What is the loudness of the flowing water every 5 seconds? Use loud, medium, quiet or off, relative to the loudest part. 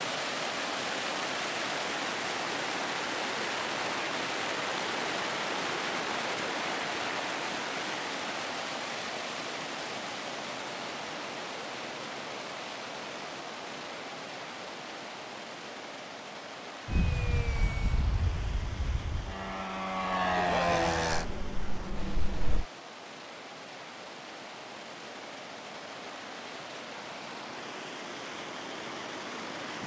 loud, loud, medium, medium, quiet, medium.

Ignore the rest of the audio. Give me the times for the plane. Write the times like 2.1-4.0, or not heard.
16.9-22.6.